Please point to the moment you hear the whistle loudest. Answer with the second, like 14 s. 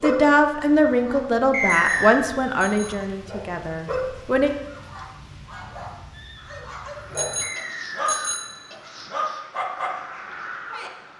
2 s.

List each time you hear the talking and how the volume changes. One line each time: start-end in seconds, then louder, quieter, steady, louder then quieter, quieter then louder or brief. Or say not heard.
0.0-4.5 quieter.